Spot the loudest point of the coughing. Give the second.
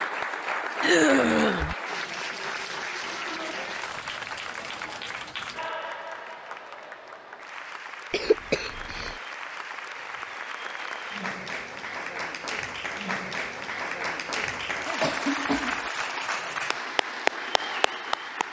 1 s.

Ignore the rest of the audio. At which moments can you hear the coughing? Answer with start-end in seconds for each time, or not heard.
0.8-1.8, 8.1-9.2, 15.0-15.8.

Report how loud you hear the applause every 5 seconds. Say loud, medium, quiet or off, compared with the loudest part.
loud, medium, loud, loud.